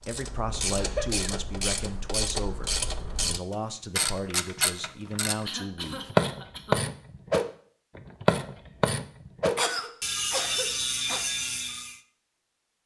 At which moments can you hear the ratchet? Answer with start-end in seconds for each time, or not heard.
0.0-11.9.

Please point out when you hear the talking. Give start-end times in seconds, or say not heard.
0.0-6.1.